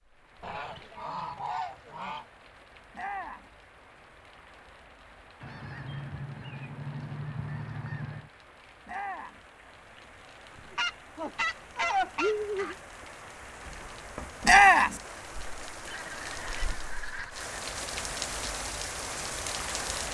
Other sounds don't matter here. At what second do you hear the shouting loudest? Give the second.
15 s.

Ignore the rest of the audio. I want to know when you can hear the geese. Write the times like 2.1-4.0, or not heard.
0.4-2.2, 5.4-8.3, 10.6-12.8, 15.8-17.6.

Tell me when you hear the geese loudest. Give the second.
12 s.